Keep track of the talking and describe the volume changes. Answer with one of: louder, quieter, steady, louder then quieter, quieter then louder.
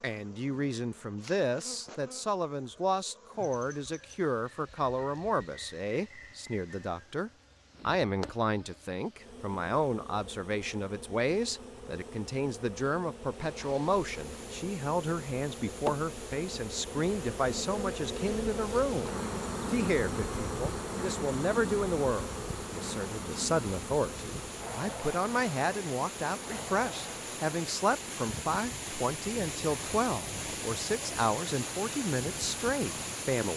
steady.